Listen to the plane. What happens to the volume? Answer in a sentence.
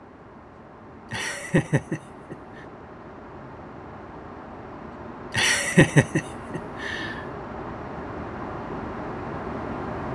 The volume of the plane goes up.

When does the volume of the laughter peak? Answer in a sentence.
The loudest moment of the laughter is at 6 seconds.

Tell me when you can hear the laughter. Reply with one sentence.
The laughter can be heard from 1.1 to 2.6 s and from 5.3 to 7.2 s.